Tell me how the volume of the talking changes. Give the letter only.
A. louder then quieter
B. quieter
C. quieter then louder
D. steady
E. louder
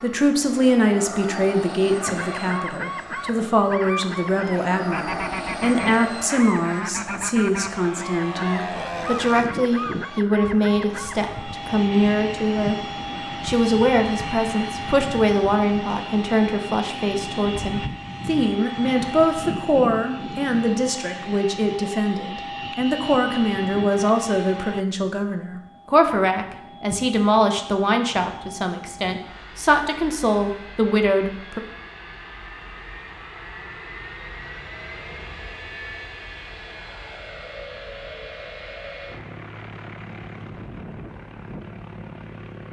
D.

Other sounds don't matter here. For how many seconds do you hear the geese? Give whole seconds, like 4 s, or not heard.
9 s.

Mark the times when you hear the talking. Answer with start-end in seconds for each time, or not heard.
0.0-12.8, 13.4-31.6.